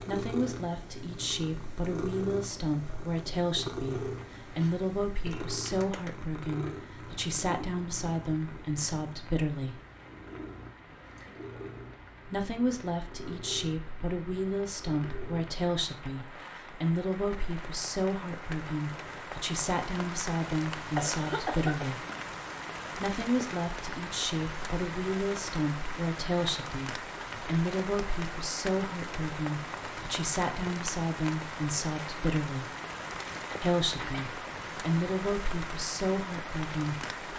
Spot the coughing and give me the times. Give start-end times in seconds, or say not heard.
4.5-5.5, 20.6-21.9, 33.5-34.3.